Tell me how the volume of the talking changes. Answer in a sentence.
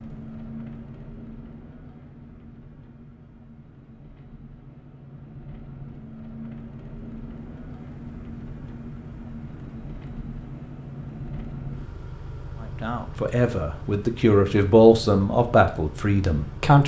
The volume of the talking goes up, then down.